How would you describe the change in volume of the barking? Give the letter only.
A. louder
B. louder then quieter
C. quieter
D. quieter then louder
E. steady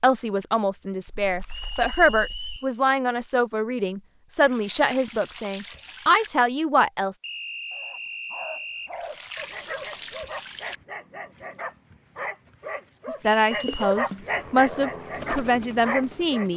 A.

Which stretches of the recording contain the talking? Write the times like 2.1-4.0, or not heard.
0.0-7.2, 13.1-16.5.